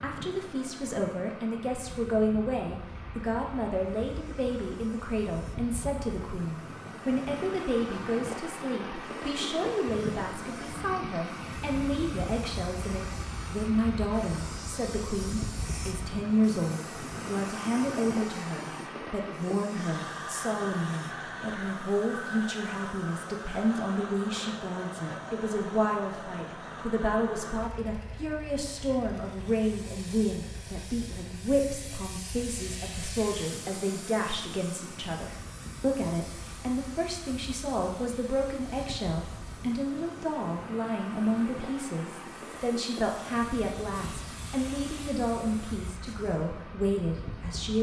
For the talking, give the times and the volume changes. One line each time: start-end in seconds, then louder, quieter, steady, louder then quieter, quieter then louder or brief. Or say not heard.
0.0-47.7 steady.